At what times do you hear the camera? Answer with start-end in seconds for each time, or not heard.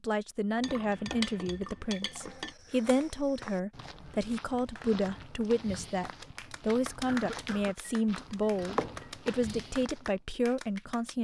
not heard.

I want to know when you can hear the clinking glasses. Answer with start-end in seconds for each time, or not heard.
0.6-2.5, 7.8-9.3.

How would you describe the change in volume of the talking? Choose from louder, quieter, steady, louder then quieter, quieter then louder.
steady.